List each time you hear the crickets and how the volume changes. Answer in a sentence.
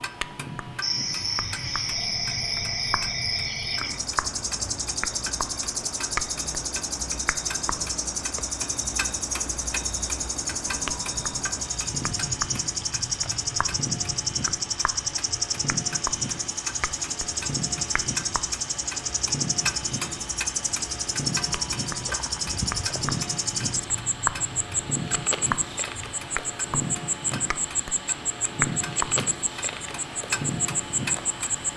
You can hear the crickets from 0.0 to 31.5 s, at a steady volume.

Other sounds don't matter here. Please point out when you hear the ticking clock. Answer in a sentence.
The ticking clock can be heard from 0.0 to 31.6 s.